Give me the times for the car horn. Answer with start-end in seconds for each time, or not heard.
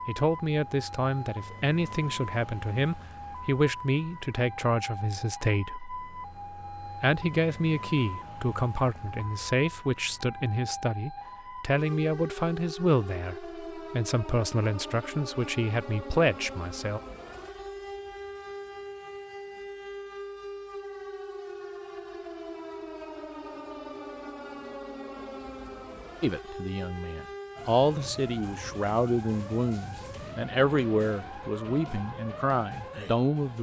not heard.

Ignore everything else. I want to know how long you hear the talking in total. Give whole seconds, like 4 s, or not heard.
23 s.